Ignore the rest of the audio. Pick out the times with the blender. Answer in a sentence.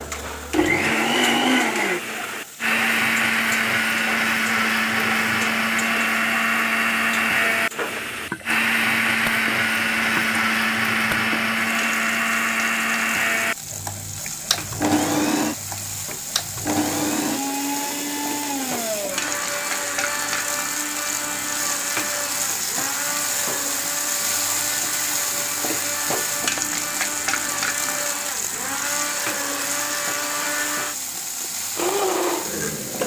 The blender can be heard from 0.0 to 33.0 s.